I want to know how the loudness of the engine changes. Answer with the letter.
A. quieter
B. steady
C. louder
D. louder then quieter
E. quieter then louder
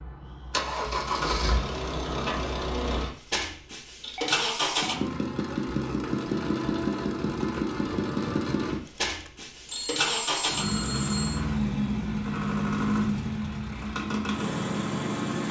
B.